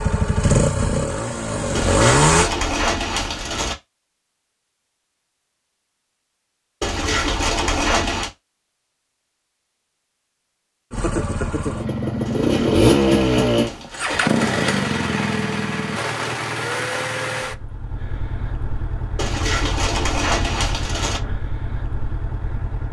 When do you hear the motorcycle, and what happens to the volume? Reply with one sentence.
The motorcycle can be heard briefly from 0.0 to 2.5 s; and from 10.9 to 22.8 s, getting quieter.